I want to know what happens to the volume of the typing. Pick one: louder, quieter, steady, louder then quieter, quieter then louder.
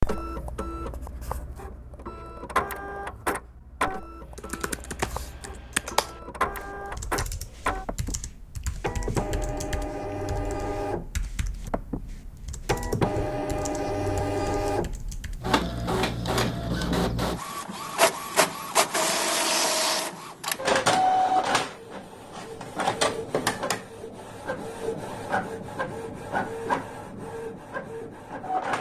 quieter.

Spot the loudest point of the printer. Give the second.
21 s.